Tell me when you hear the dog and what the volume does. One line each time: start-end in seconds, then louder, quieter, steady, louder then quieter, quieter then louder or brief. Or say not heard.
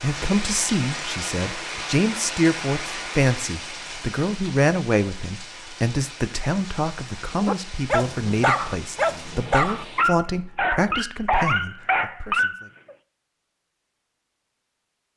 7.3-12.9 steady.